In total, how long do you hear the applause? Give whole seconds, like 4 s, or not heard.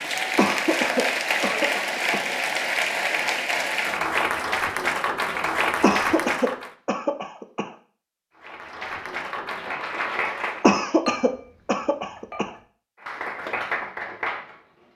11 s.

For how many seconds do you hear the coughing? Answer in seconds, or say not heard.
6 s.